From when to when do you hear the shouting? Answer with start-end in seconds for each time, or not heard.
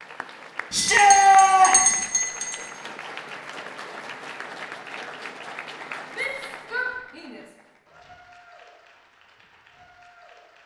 0.7-1.9, 6.1-7.4.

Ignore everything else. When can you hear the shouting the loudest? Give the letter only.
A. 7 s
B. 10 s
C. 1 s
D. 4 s
C.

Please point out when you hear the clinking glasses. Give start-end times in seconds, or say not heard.
0.9-2.6.